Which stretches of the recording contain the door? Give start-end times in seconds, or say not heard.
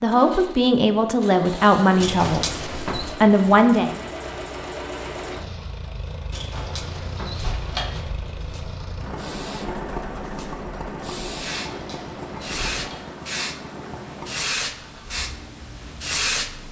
2.0-3.1, 6.3-8.1, 11.6-12.9.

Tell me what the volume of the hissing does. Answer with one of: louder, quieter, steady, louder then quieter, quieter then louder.
louder.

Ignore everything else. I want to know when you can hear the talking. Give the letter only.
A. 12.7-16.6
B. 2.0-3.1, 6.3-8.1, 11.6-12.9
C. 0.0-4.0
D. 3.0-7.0
C.